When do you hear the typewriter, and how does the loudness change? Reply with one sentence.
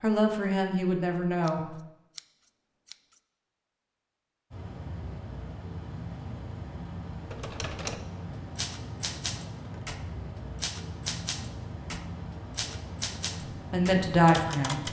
You can hear the typewriter from 7.3 to 14.8 s, at a steady volume.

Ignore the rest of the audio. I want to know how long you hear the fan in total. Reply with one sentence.
You can hear the fan for 10 seconds altogether.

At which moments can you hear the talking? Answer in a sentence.
The talking can be heard from 0.0 to 1.7 s and from 13.7 to 14.8 s.